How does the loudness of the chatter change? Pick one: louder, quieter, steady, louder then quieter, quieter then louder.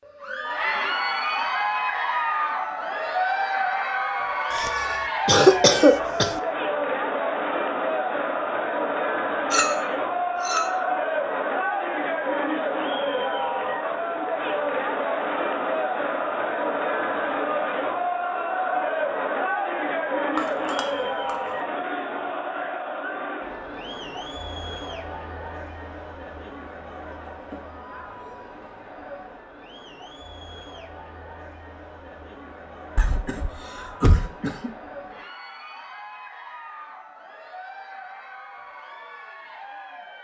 quieter.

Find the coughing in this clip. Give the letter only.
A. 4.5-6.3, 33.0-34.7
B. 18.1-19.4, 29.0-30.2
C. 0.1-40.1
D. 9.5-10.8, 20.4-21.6
A.